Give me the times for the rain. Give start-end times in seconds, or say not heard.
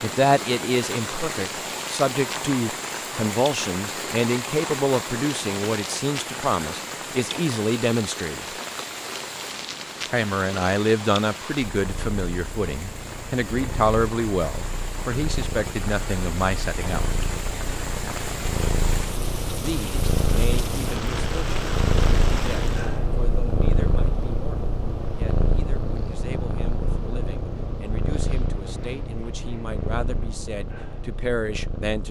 0.0-23.0.